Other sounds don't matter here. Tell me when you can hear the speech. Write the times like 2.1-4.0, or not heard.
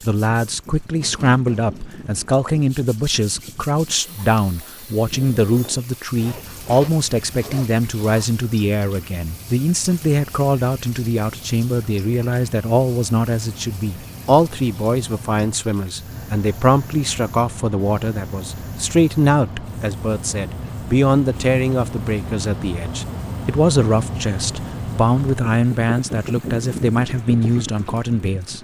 0.1-28.5.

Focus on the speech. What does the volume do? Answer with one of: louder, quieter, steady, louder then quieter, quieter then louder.
steady.